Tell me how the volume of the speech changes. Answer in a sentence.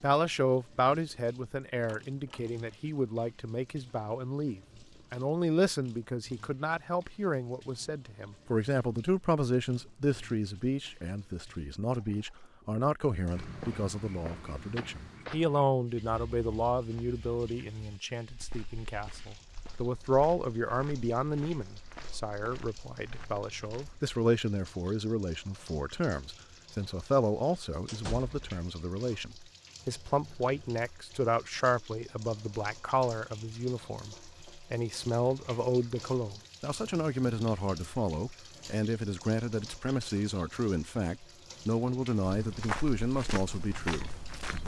The loudness of the speech stays about the same.